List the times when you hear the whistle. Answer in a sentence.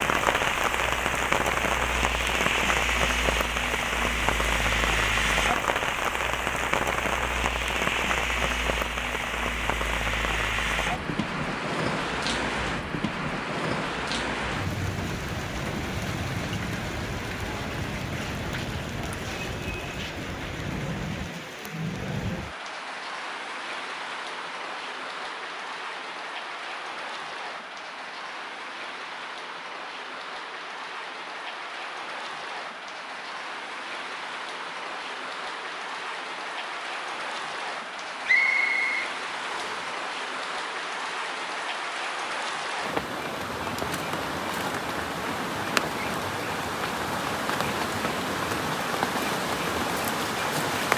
You can hear the whistle from 38.2 to 39.9 s.